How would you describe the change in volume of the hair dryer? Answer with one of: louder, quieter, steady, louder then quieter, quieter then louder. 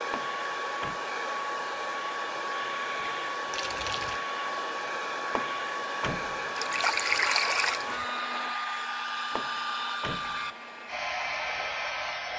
steady.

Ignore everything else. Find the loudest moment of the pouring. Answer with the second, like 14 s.
7 s.